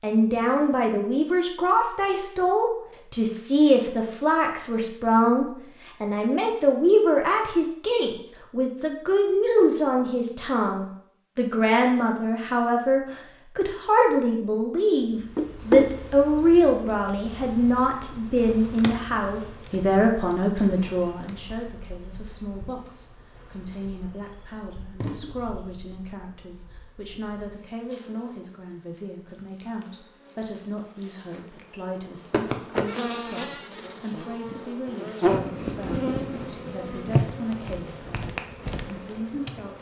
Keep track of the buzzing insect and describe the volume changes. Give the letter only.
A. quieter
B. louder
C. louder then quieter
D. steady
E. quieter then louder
E.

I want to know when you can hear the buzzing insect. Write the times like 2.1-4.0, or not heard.
15.2-39.7.